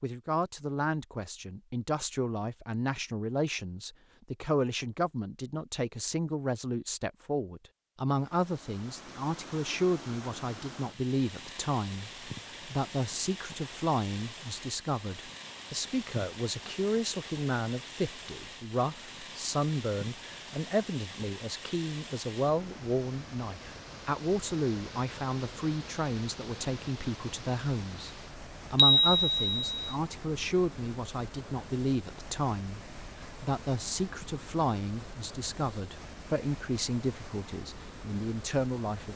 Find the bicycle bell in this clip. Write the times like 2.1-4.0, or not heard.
28.8-29.9.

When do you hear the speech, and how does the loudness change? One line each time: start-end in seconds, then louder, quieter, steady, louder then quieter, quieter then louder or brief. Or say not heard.
0.0-39.1 steady.